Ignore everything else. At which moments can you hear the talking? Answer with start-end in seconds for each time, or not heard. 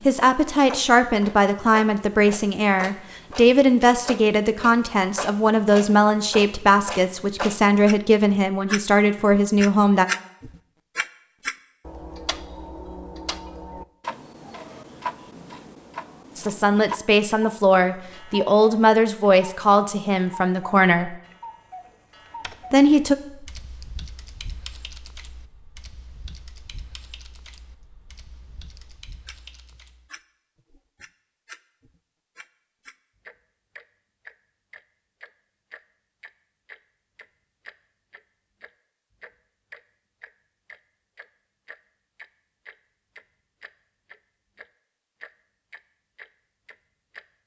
0.1-10.1, 16.4-21.1, 22.7-23.1.